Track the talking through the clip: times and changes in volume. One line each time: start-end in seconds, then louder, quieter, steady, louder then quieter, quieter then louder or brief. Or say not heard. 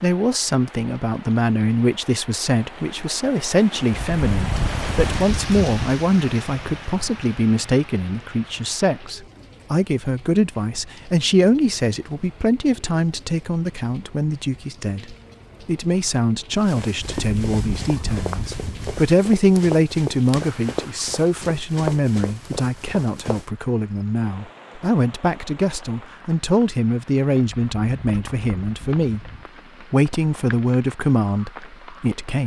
0.0-29.2 steady
29.9-32.4 brief.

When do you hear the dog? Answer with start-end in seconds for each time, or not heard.
not heard.